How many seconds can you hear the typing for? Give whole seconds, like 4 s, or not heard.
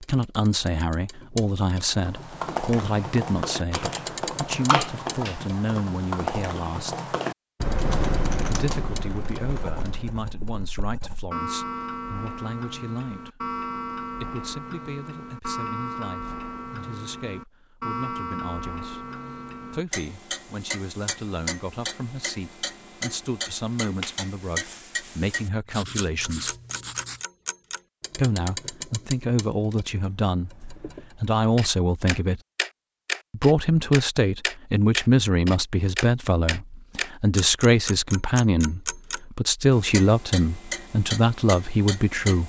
8 s.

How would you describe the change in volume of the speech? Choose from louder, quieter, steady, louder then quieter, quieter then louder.
quieter then louder.